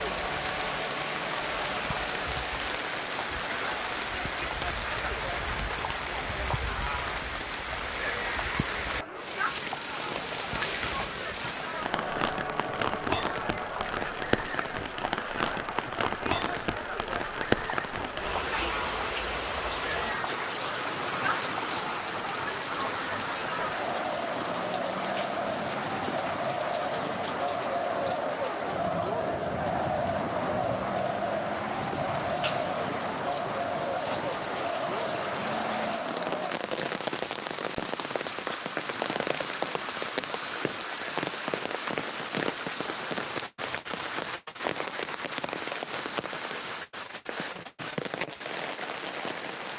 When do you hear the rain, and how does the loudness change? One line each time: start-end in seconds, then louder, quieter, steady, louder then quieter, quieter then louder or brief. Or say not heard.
0.0-49.7 steady.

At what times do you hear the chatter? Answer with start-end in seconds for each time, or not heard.
0.0-36.5.